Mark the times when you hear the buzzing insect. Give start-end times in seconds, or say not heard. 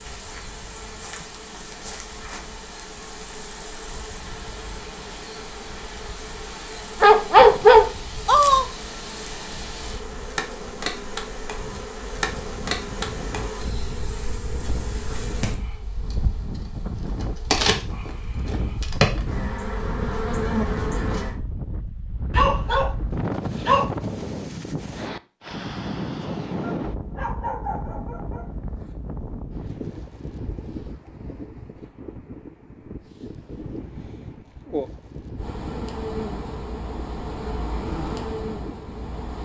0.0-21.4, 35.4-39.4.